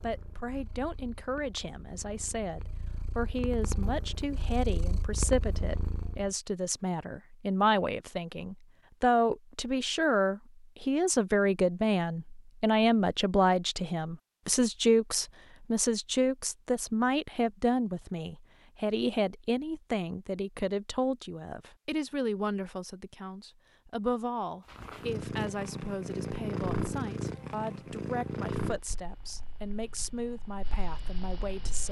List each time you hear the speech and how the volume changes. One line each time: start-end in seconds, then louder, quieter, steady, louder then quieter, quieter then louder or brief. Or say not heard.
0.0-31.8 louder then quieter.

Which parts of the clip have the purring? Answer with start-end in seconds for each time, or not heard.
0.0-6.3, 24.6-31.8.